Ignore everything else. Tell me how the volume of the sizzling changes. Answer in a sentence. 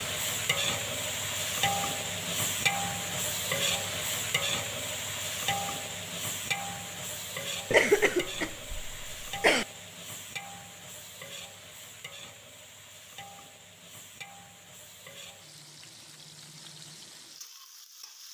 The volume of the sizzling goes down.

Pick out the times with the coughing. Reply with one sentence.
The coughing can be heard from 7.7 to 9.7 s.